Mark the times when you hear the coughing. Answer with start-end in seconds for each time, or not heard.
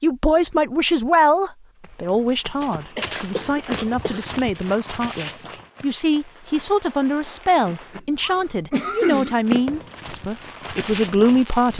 3.0-4.3, 7.7-9.7.